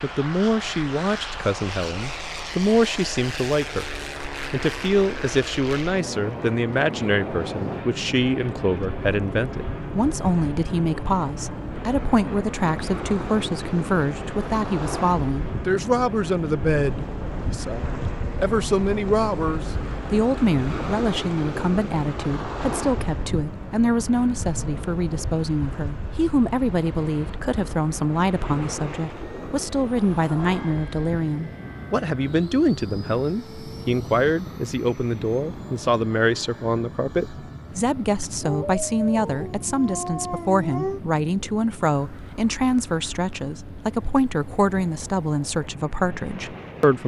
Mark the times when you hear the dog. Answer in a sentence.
You can hear the dog from 38.4 to 41.0 s.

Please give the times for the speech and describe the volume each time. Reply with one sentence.
The speech can be heard from 0.0 to 47.0 s, at a steady volume.